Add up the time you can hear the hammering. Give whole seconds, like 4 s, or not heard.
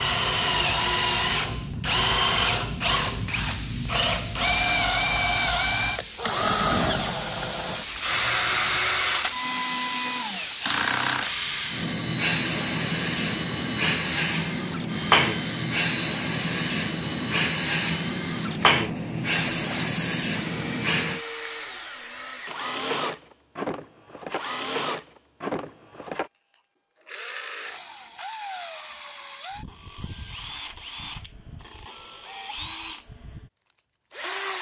not heard.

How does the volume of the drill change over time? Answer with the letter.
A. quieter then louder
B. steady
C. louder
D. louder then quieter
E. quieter
E.